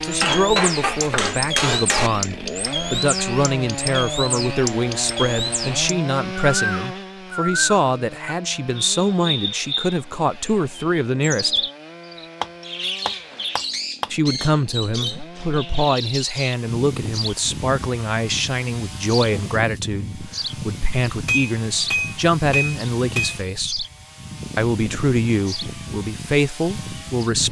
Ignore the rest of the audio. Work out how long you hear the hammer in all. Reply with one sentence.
The hammer can be heard for 5 seconds in total.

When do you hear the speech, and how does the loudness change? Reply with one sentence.
The speech can be heard from 0.0 to 11.6 s, at a steady volume; from 14.1 to 23.9 s, at a steady volume; and briefly from 24.6 to 27.4 s.